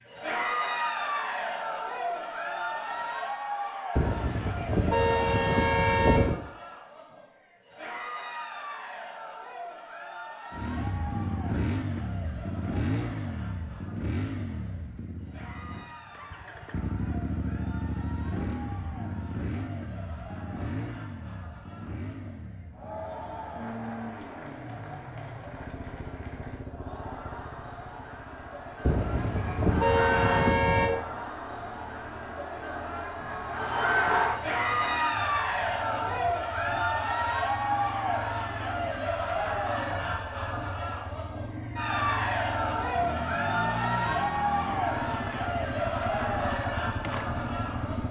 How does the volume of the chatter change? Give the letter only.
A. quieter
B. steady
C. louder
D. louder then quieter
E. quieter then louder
E.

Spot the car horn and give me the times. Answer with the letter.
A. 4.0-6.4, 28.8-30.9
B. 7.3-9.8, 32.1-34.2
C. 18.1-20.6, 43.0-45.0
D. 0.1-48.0
A.